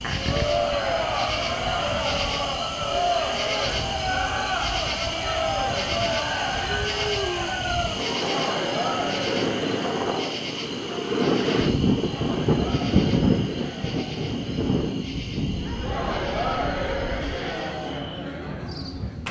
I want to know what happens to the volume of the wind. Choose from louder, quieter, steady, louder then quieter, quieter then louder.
louder then quieter.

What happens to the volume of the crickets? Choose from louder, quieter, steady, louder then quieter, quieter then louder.
quieter.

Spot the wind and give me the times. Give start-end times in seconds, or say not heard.
0.0-19.2.